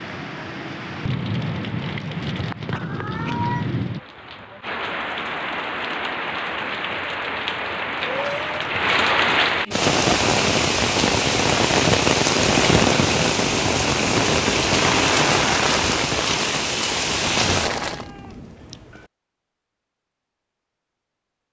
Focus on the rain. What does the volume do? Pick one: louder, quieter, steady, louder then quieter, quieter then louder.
louder.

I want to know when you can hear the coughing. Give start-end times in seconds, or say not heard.
not heard.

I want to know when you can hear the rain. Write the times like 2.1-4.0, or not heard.
0.0-18.1.